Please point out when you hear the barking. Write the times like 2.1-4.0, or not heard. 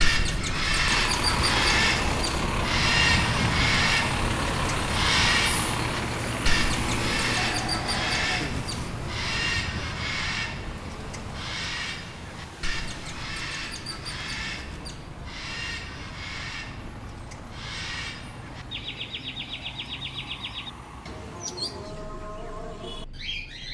not heard.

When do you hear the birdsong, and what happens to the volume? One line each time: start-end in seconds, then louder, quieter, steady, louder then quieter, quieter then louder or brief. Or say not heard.
0.0-23.6 quieter.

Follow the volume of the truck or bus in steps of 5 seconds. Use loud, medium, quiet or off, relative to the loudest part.
loud, loud, quiet, quiet, quiet.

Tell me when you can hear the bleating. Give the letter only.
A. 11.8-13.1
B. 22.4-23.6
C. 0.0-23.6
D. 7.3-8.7
D.